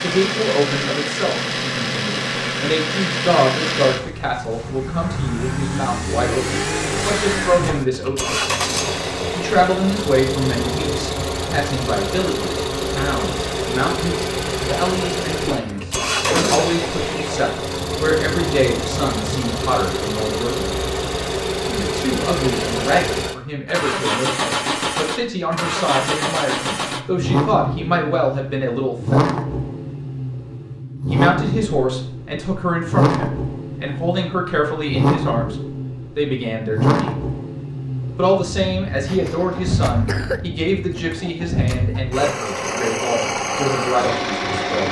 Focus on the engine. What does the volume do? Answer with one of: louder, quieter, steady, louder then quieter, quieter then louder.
steady.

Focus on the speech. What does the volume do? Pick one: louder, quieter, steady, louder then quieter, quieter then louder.
steady.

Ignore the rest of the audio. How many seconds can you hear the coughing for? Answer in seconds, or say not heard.
3 s.